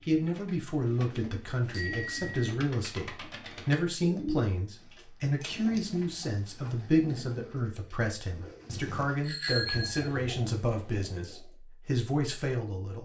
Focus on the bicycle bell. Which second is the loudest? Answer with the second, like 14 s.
10 s.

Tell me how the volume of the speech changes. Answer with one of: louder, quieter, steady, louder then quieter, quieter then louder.
steady.